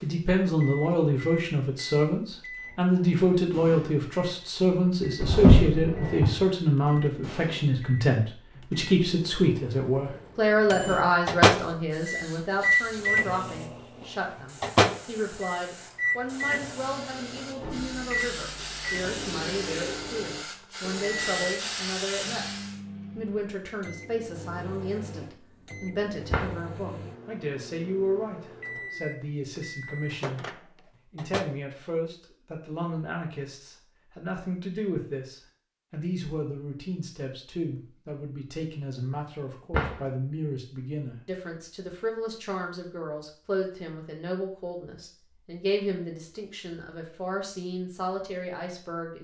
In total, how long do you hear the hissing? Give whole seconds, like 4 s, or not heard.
11 s.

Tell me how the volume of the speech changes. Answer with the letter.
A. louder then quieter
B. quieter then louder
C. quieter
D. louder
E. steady
C.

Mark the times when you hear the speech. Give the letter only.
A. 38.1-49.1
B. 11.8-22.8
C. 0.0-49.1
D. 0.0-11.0
C.